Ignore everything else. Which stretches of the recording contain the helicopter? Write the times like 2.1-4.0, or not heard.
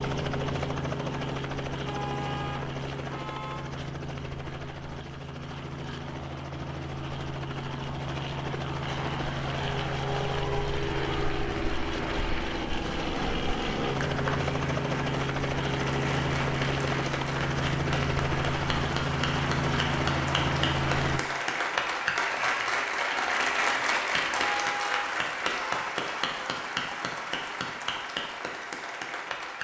0.0-21.2.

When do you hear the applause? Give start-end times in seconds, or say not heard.
8.8-29.5.